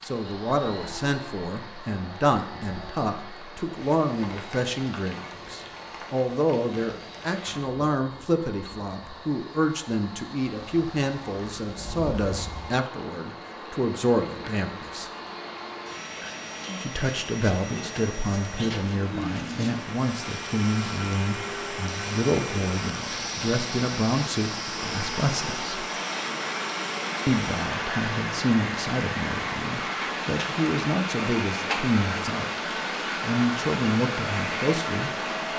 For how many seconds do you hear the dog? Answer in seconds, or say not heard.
not heard.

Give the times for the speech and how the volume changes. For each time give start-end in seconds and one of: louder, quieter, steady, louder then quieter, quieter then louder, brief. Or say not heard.
0.0-15.1 steady
16.8-25.9 steady
27.2-32.5 quieter then louder
33.2-35.1 brief.